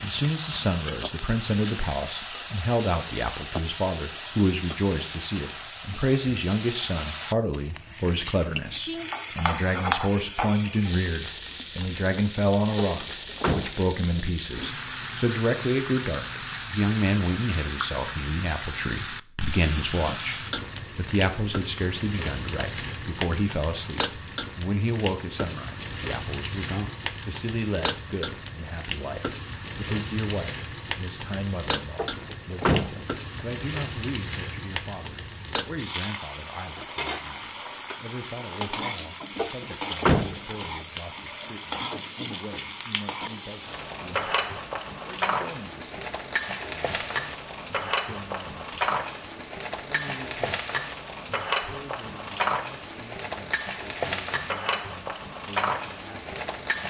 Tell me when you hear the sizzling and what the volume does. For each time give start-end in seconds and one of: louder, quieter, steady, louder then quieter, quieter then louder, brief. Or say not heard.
0.0-56.8 steady.